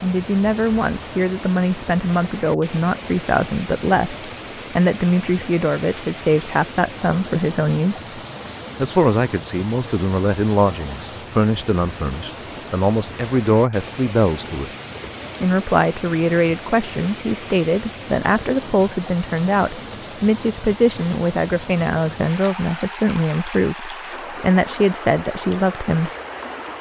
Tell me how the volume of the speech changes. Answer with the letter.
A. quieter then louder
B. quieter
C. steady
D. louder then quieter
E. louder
C.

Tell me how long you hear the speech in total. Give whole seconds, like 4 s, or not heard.
25 s.